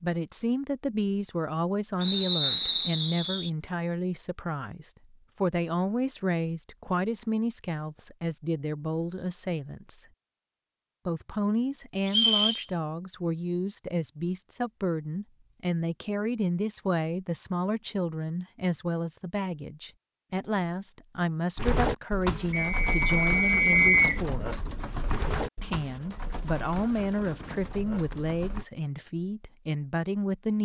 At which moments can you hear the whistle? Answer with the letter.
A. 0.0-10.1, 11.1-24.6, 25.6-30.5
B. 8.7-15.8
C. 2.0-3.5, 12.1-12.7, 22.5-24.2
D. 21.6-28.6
C.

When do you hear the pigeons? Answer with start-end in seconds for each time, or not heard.
21.6-28.6.